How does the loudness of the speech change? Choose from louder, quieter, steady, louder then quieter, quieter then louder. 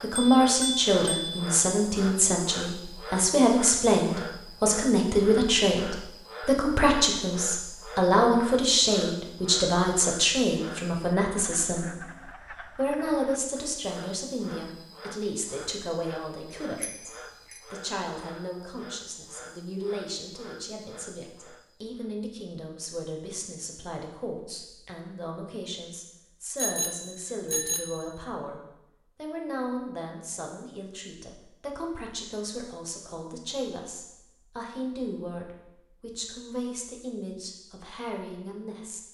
quieter.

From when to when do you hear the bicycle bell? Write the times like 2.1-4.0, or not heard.
0.1-1.5, 16.8-17.6, 26.6-28.0.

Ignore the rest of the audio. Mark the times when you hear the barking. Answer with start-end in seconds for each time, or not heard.
not heard.